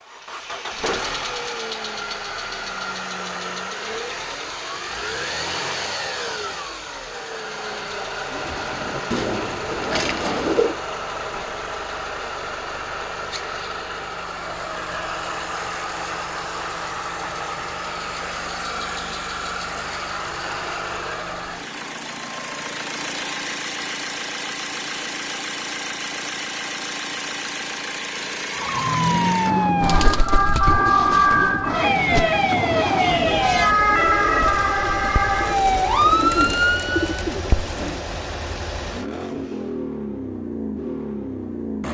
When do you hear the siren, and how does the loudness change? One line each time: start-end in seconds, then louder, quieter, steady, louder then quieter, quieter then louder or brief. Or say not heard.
28.5-37.2 steady.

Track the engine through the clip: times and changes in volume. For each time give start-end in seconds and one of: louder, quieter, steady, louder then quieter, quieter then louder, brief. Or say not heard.
0.0-41.8 steady.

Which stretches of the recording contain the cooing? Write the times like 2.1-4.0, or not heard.
8.2-10.8, 29.8-38.0.